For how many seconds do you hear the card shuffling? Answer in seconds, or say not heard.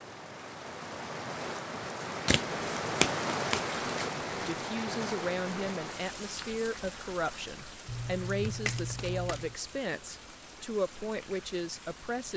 3 s.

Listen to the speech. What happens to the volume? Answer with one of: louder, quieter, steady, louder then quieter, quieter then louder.
steady.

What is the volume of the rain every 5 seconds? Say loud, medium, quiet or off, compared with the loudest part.
loud, medium, quiet.